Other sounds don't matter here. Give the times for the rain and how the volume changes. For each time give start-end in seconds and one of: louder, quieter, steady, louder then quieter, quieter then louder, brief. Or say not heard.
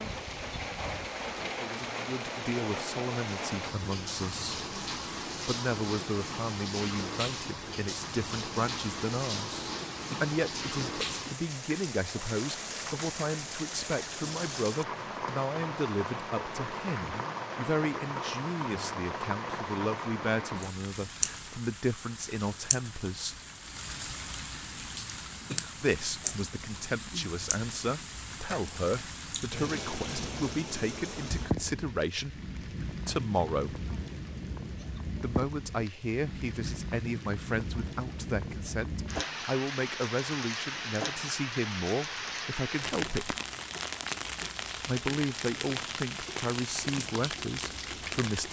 0.0-48.4 steady.